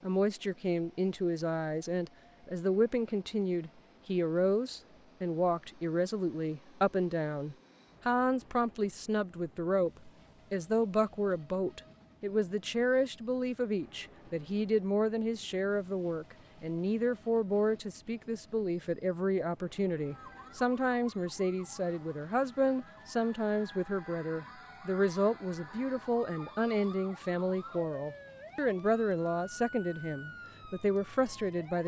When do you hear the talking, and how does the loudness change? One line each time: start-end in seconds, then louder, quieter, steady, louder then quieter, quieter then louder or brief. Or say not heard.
0.0-31.8 steady.